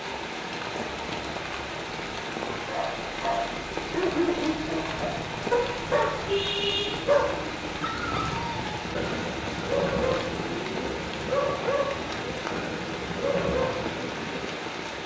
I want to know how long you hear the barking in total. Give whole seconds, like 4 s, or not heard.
12 s.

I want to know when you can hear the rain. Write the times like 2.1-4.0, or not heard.
0.0-15.0.